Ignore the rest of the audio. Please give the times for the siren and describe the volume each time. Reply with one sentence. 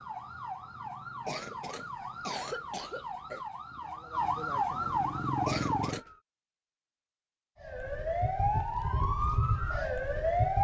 You can hear the siren from 0.0 to 6.2 s, getting louder; and briefly from 7.6 to 10.5 s.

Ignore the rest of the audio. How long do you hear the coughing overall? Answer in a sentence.
You can hear the coughing for 3 seconds altogether.